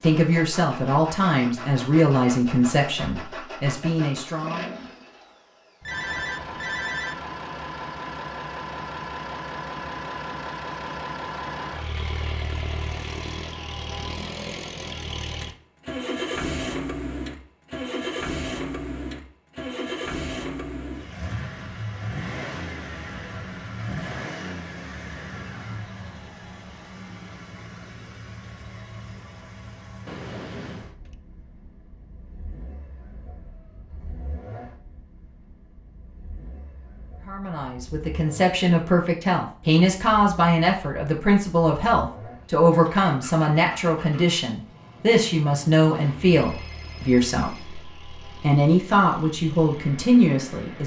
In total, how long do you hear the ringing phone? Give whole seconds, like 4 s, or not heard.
4 s.